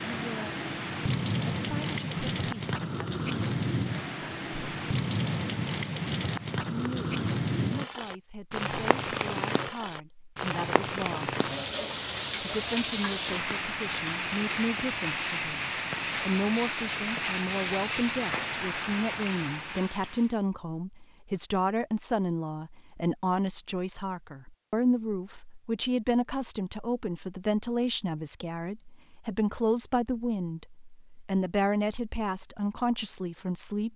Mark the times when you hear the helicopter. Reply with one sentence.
You can't hear the helicopter here.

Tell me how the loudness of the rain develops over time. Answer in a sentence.
The loudness of the rain stays about the same.